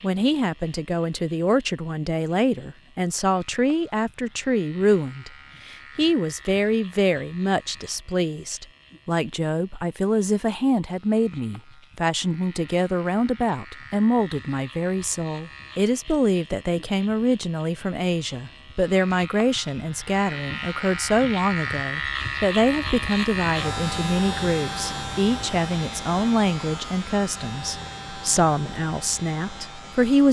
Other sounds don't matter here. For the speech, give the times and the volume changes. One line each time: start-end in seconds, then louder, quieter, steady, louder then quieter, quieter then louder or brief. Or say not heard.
0.0-30.2 steady.